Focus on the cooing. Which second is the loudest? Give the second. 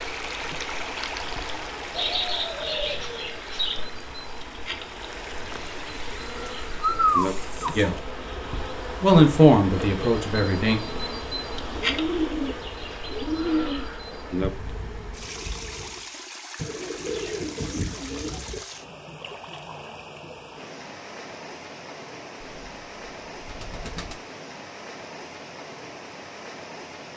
7 s.